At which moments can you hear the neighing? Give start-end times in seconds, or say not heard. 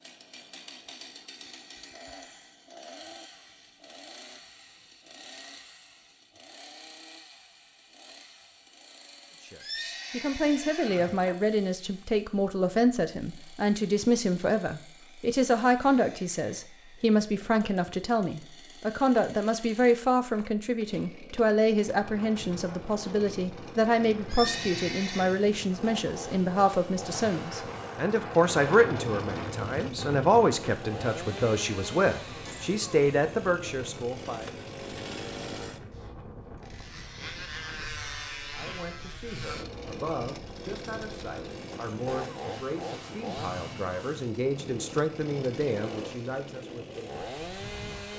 9.6-11.3, 24.2-25.4.